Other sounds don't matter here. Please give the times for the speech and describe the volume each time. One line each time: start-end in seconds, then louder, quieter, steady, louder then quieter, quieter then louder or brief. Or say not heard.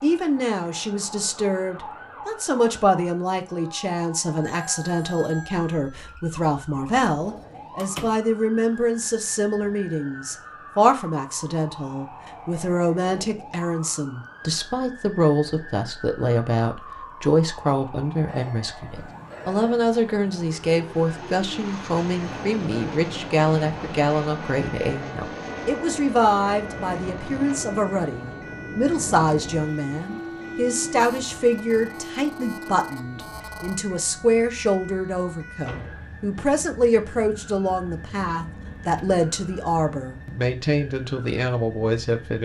0.0-42.4 steady.